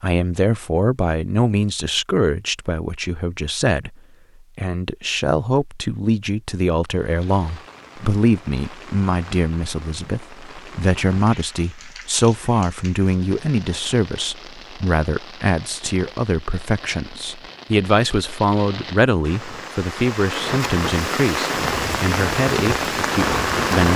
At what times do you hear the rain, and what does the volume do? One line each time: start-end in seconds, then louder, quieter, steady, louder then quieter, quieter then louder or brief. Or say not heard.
6.8-23.9 louder.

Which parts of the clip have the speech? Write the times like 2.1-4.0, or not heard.
0.0-4.0, 4.5-23.9.